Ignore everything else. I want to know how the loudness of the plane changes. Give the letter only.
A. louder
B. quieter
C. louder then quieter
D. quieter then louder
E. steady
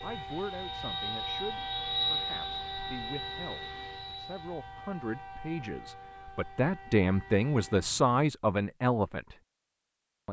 C.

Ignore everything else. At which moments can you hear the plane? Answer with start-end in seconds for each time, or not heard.
0.0-4.6.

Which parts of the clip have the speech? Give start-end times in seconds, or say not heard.
0.0-9.3.